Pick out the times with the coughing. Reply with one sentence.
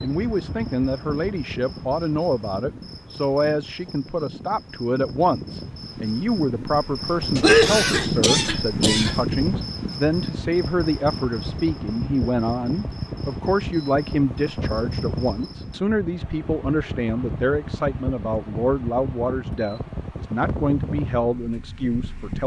The coughing can be heard from 7.3 to 9.2 s.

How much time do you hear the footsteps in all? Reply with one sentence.
The footsteps can't be heard in this clip.